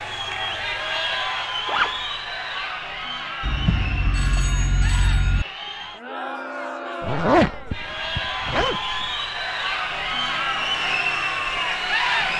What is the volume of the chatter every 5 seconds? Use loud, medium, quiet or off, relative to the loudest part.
medium, medium, loud.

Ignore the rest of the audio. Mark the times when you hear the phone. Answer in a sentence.
The phone can be heard from 3.4 to 5.5 s.